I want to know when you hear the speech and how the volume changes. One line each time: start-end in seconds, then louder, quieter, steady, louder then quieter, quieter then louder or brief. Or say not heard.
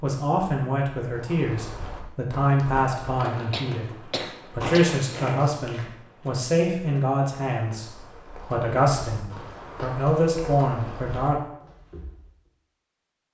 0.0-11.3 steady.